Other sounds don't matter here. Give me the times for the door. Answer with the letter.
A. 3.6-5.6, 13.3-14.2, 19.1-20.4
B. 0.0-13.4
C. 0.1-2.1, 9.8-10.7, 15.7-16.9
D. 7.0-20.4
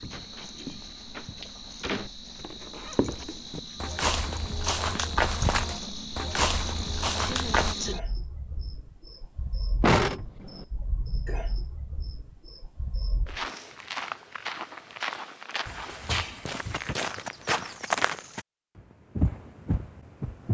C.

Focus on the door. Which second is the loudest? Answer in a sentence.
The volume of the door peaks at 10 seconds.